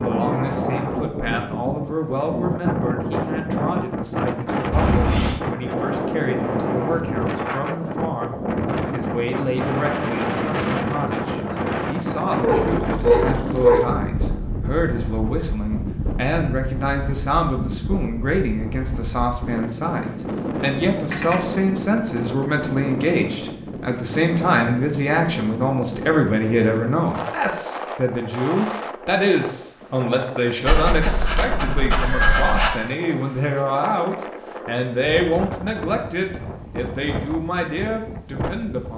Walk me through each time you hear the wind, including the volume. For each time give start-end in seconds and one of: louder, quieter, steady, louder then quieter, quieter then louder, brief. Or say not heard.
0.0-38.9 quieter.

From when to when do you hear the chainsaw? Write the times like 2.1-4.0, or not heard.
not heard.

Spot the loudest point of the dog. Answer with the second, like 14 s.
13 s.